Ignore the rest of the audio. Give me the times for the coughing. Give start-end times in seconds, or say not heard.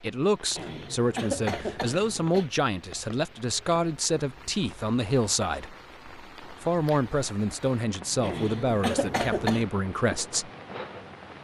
0.6-2.5, 8.2-9.7.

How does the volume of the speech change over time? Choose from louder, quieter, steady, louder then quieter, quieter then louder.
steady.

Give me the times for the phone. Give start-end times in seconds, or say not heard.
not heard.